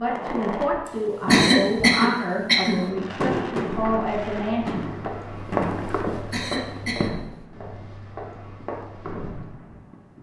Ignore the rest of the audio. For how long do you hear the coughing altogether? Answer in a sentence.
The coughing can be heard for 3 seconds in total.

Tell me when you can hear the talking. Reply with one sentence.
You can hear the talking from 0.0 to 5.0 s.